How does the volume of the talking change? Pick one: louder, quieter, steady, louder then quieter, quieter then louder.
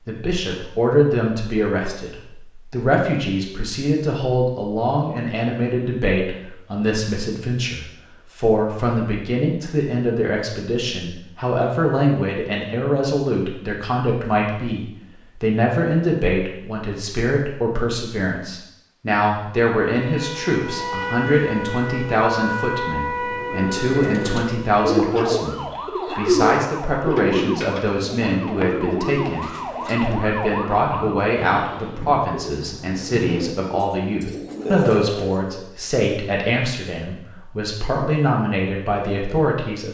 steady.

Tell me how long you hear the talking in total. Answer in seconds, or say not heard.
40 s.